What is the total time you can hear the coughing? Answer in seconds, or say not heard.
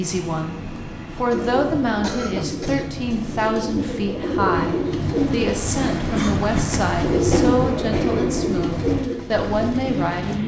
2 s.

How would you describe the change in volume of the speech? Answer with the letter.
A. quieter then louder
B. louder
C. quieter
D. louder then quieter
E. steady
E.